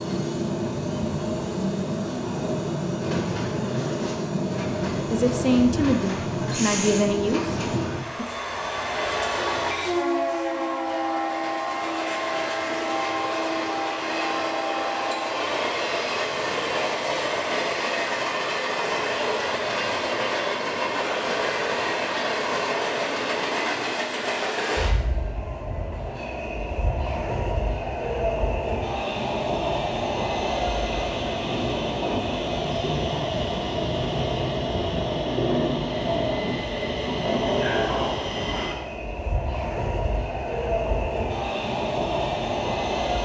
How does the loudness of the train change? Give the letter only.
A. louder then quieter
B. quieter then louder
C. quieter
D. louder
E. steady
E.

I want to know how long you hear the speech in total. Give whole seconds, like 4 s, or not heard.
3 s.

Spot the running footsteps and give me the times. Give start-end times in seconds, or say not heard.
not heard.